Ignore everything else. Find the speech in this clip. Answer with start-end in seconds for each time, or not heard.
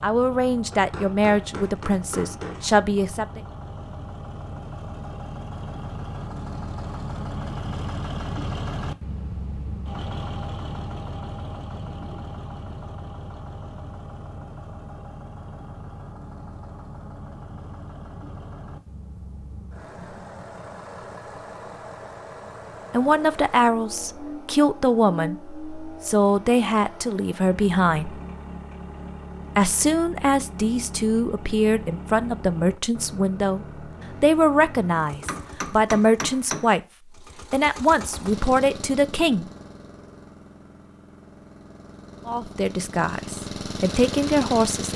0.0-3.4, 22.9-28.2, 29.6-36.8, 37.5-39.5, 42.2-44.9.